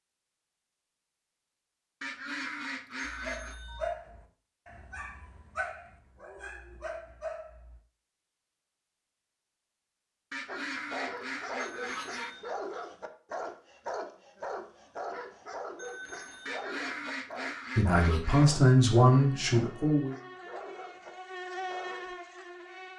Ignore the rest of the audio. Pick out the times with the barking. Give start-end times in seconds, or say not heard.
3.0-7.8, 10.4-22.1.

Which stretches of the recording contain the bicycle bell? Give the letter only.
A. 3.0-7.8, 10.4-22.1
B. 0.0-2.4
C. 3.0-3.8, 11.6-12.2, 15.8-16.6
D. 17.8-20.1
C.